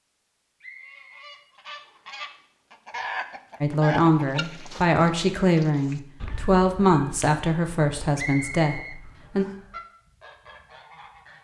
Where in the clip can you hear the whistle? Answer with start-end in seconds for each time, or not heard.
0.6-2.2, 8.2-9.6.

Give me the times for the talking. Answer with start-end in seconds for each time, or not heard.
3.6-9.4.